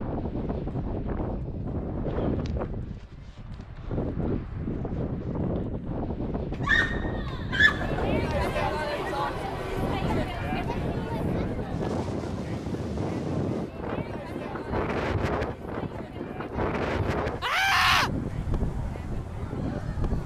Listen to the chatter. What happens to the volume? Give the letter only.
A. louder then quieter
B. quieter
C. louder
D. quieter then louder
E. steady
B.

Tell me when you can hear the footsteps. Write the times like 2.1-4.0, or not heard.
not heard.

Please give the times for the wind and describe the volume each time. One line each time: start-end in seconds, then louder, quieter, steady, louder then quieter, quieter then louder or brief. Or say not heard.
0.0-20.2 steady.